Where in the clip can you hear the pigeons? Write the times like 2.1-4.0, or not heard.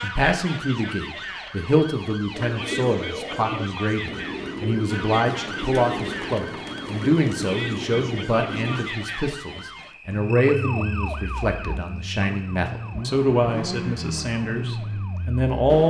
2.3-8.9.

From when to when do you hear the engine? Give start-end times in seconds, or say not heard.
10.1-15.8.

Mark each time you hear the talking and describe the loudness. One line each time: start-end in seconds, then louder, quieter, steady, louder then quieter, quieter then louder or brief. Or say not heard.
0.0-15.8 steady.